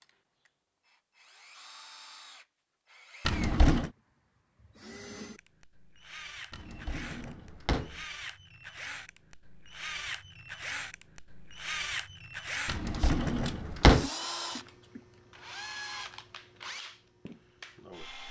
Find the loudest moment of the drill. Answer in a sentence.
The loudest moment of the drill is at 12 seconds.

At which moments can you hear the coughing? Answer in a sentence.
The coughing can be heard from 14.0 to 15.1 s.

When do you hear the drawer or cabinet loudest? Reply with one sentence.
The volume of the drawer or cabinet peaks at 14 seconds.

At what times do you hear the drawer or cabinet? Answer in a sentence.
The drawer or cabinet can be heard from 3.2 to 3.9 s, from 6.5 to 8.0 s and from 12.7 to 14.1 s.